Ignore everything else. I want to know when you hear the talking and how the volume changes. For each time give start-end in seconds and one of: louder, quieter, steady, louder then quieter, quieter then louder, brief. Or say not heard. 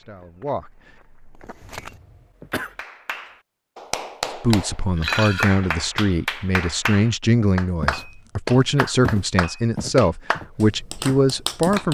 0.0-0.7 brief
4.4-11.8 steady.